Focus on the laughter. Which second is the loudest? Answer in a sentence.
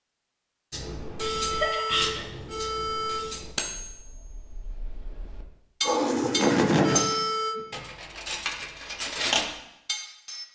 The volume of the laughter peaks at 7 seconds.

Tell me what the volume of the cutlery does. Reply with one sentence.
The loudness of the cutlery goes up.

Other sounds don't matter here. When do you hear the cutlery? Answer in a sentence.
The cutlery can be heard from 0.7 to 10.4 s.